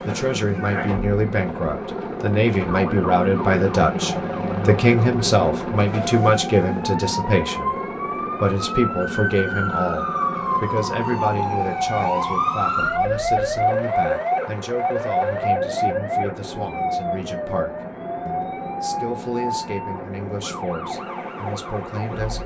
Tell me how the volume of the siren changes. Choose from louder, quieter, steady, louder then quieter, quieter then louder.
louder then quieter.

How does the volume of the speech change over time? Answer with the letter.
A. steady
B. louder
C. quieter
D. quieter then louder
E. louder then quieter
C.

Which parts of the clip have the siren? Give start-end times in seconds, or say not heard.
0.0-22.4.